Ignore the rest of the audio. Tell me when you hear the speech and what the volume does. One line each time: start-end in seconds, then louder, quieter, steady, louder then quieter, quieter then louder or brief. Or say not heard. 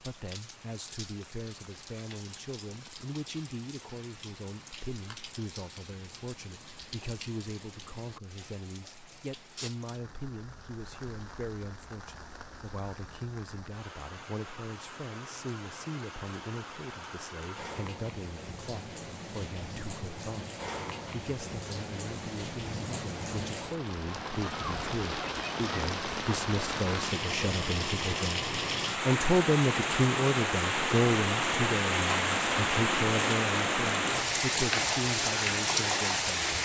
0.0-36.6 louder.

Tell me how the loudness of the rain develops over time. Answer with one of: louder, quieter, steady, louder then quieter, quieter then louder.
louder.